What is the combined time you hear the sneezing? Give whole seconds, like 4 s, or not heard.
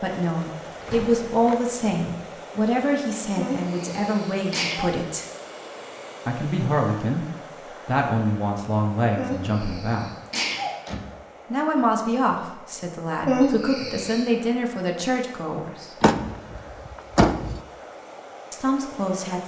4 s.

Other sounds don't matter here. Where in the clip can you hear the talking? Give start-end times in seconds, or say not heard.
0.0-5.2, 6.2-7.2, 7.8-10.1, 11.5-16.1, 18.5-19.4.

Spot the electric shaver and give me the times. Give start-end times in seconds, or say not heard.
not heard.